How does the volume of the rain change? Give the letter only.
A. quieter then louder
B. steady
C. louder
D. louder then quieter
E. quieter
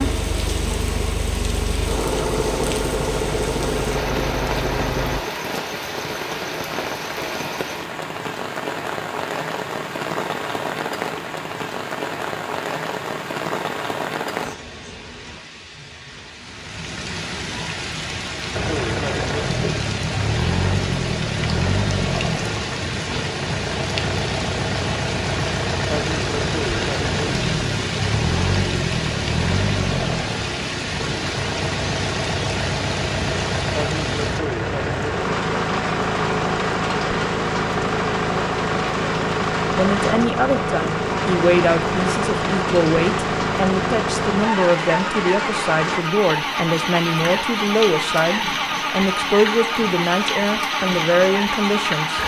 B.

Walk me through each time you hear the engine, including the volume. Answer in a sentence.
The engine can be heard from 0.0 to 5.2 s, getting louder; and from 18.5 to 52.2 s, at a steady volume.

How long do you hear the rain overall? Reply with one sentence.
The rain can be heard for 52 seconds in total.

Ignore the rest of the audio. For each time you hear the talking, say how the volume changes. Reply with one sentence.
You can hear the talking from 39.8 to 52.2 s, at a steady volume.